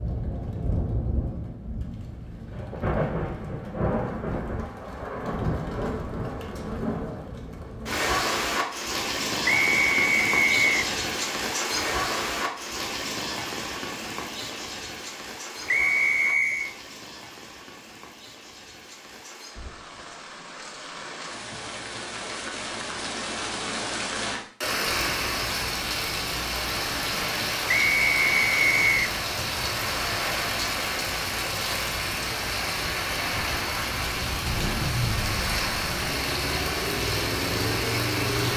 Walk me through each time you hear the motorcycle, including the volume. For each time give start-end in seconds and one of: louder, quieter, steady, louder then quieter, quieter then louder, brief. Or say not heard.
34.4-38.5 quieter then louder.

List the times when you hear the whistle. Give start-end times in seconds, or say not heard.
9.4-10.9, 15.7-16.7, 27.7-29.0.